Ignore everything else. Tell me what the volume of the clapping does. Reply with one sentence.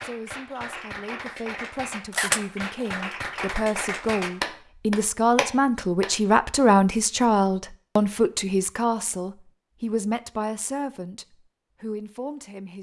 The volume of the clapping goes up.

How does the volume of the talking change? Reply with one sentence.
The loudness of the talking goes up, then down.